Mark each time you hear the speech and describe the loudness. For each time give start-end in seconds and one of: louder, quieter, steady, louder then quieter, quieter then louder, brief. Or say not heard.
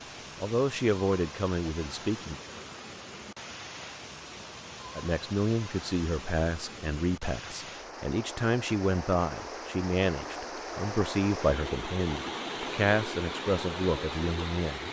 0.3-2.4 brief
5.0-14.8 steady.